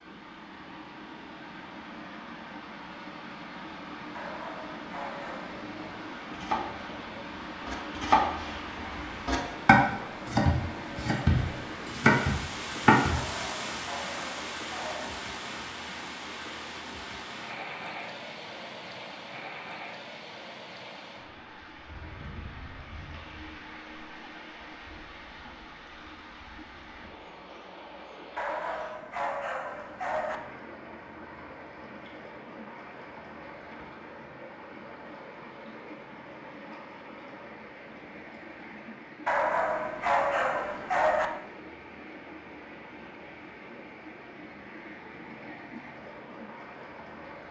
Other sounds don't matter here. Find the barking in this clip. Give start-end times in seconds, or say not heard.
4.1-5.7, 13.1-15.1, 28.4-30.4, 39.2-41.3.